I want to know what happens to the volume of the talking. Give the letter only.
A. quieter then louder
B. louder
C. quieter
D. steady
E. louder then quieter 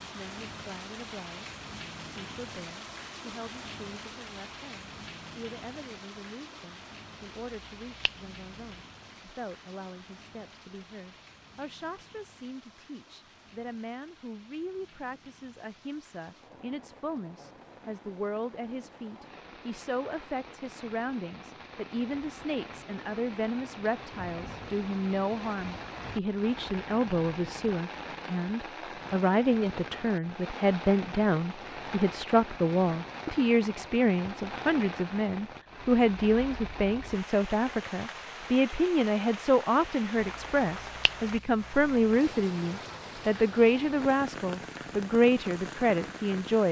B.